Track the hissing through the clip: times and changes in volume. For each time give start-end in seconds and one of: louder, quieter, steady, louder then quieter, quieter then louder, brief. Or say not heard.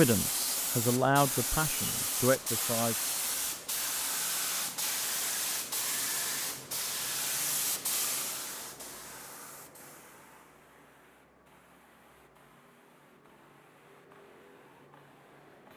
0.0-15.7 quieter.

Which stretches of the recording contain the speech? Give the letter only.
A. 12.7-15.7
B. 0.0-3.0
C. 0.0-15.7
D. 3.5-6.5
B.